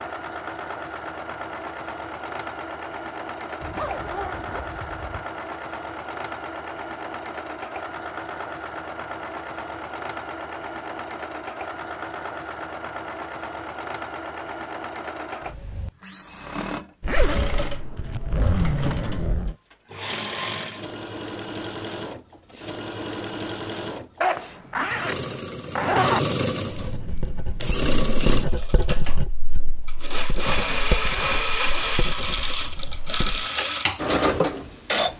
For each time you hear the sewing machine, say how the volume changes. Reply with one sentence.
You can hear the sewing machine from 0.0 to 35.1 s, getting louder.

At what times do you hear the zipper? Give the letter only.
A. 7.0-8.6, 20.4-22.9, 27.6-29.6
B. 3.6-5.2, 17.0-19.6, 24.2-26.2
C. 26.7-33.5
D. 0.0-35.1
B.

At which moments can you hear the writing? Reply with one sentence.
You can hear the writing from 26.7 to 33.5 s.